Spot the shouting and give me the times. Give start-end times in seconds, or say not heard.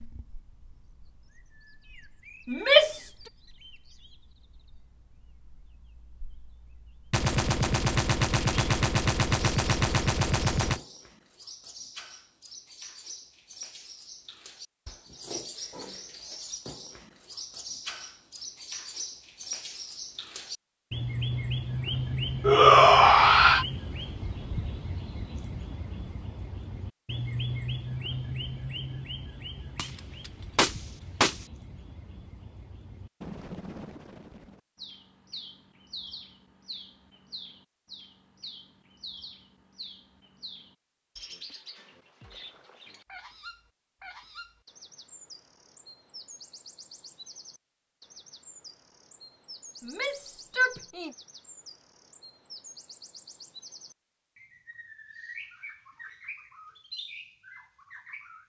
2.5-3.1, 22.4-23.6, 49.8-51.1.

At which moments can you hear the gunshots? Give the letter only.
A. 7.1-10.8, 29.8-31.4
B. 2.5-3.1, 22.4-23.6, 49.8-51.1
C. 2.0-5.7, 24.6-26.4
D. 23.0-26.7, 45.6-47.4
A.